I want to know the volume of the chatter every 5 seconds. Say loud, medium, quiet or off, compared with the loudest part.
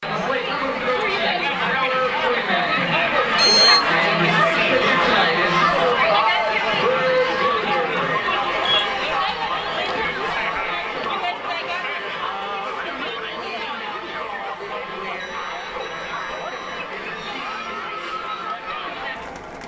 loud, loud, medium, medium.